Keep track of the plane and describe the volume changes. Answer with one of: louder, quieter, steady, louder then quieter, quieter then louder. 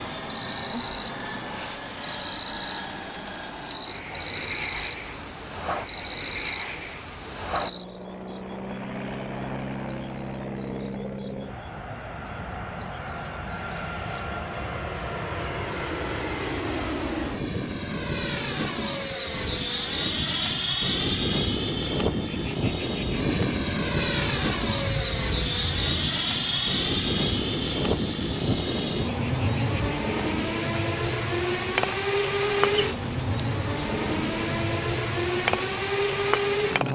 louder.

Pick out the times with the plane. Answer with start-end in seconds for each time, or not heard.
0.0-36.9.